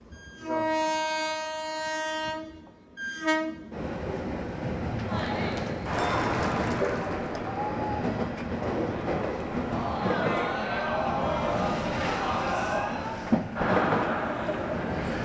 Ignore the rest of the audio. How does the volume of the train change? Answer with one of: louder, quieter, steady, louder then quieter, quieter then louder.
steady.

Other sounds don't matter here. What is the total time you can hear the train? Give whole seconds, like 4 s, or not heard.
15 s.